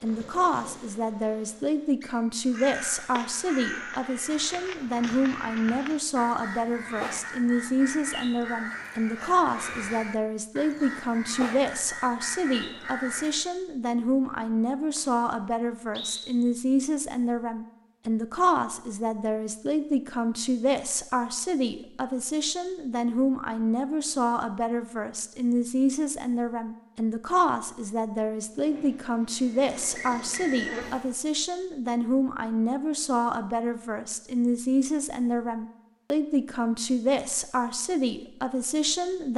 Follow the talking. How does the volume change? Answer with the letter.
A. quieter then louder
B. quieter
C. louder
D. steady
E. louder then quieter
D.